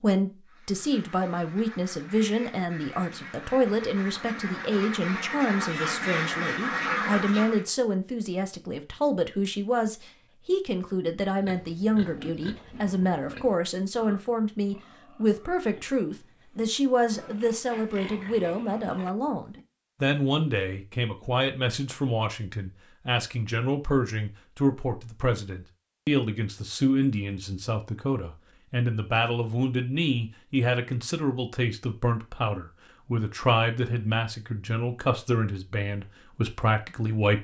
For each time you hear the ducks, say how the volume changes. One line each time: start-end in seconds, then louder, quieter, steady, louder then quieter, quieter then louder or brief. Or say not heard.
0.5-7.7 louder.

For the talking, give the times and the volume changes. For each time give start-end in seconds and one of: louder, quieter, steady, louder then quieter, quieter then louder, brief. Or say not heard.
0.0-37.3 steady.